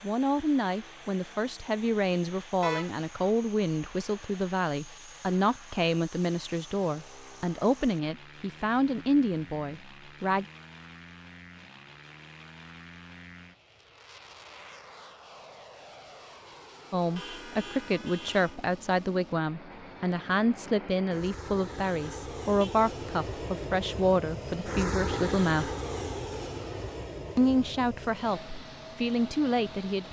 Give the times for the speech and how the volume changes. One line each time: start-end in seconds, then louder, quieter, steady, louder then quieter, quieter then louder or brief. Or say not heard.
0.0-10.4 steady
16.9-25.6 steady
27.4-30.0 brief.